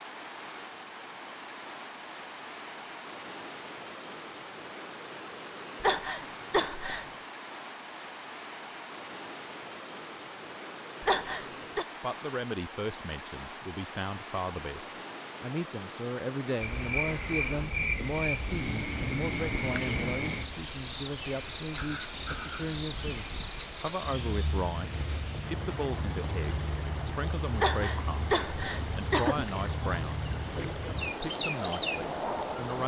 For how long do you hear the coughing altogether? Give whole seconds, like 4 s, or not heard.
4 s.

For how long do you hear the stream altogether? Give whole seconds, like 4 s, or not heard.
33 s.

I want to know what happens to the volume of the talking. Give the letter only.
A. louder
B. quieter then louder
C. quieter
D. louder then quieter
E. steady
E.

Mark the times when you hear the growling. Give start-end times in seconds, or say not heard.
21.8-22.8.